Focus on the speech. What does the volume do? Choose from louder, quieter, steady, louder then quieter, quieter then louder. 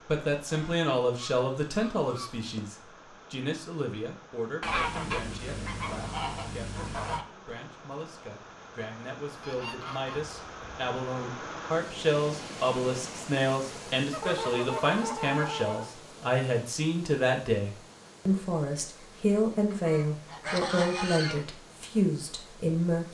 quieter then louder.